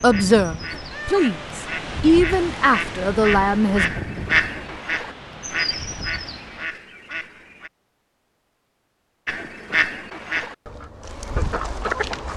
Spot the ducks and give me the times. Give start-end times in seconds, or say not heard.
0.0-7.7, 9.2-12.3.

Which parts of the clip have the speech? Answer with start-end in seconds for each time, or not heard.
0.0-3.9.